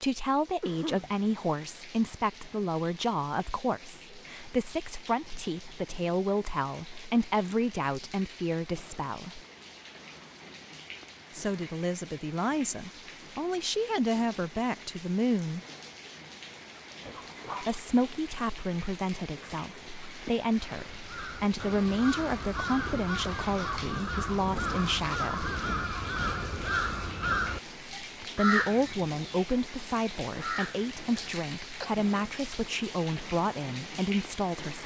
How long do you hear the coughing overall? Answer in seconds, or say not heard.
2 s.